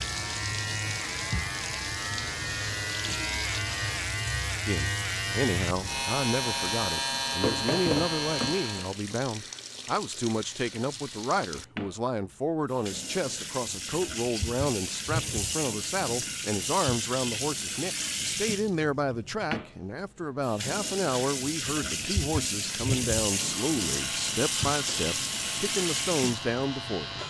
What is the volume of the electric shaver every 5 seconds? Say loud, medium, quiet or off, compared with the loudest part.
loud, loud, off, off, medium, medium.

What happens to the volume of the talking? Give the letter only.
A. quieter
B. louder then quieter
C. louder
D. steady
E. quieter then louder
D.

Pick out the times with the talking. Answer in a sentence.
You can hear the talking from 4.7 to 27.2 s.